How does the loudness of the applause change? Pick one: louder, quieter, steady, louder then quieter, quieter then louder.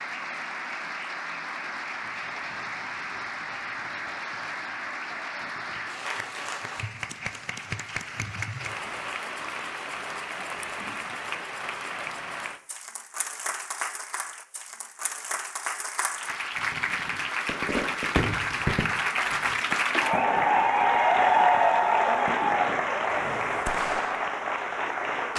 louder.